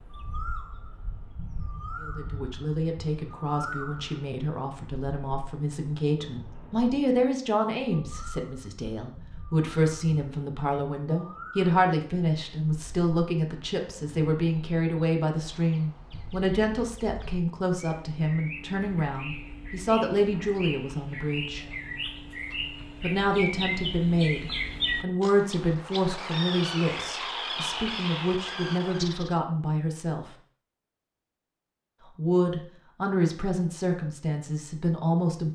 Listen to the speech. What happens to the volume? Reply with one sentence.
The loudness of the speech stays about the same.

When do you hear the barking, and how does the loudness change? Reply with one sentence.
The barking can't be heard in this clip.